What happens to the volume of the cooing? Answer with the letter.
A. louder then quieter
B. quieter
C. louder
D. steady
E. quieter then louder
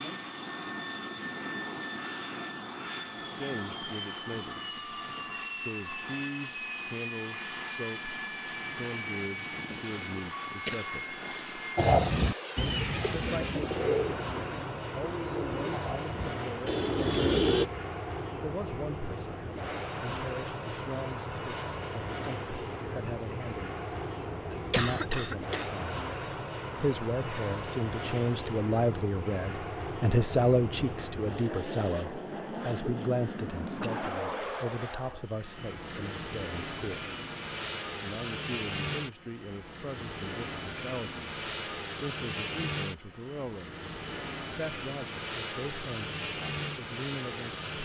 E.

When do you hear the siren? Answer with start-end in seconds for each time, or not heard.
not heard.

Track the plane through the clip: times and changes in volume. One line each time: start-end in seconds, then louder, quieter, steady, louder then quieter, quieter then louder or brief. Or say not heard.
0.0-47.8 steady.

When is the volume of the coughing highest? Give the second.
25 s.